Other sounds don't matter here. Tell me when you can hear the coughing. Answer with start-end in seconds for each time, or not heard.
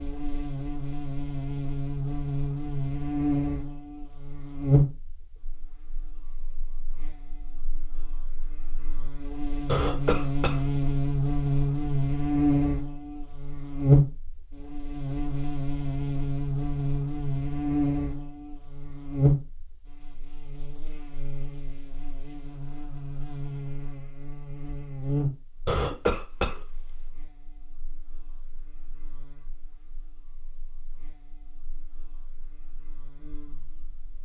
9.7-10.8, 25.6-27.1.